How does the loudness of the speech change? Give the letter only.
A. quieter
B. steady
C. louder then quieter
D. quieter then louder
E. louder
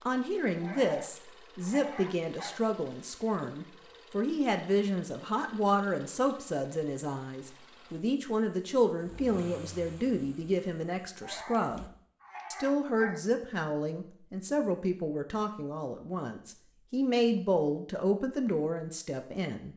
B.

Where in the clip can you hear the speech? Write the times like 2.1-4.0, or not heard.
0.0-11.8, 12.5-19.7.